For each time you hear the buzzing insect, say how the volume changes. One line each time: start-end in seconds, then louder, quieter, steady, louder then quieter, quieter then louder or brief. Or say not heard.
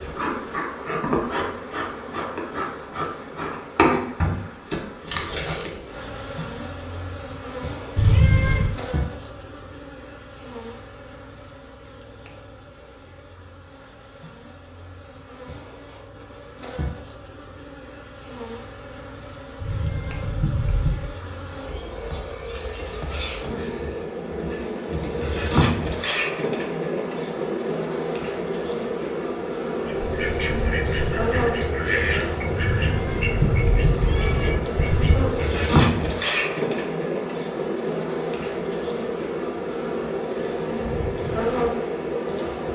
0.0-42.7 quieter then louder.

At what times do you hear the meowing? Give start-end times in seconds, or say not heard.
8.0-8.8, 19.6-21.1, 32.6-34.5.